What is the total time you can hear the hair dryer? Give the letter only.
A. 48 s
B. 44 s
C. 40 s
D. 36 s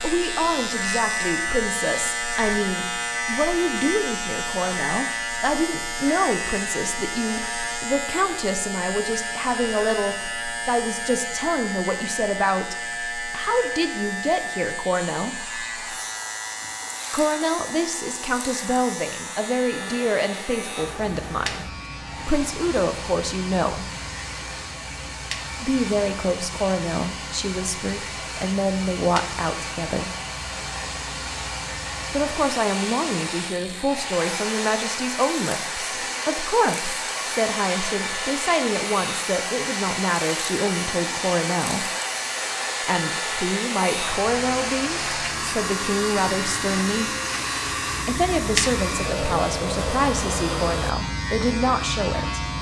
D.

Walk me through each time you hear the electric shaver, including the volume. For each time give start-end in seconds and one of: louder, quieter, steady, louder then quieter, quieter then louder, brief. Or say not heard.
0.0-52.5 quieter then louder.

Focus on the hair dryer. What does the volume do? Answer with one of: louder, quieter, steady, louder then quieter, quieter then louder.
louder.